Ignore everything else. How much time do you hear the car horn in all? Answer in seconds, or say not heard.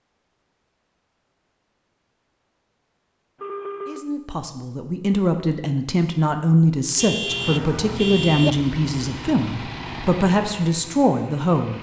2 s.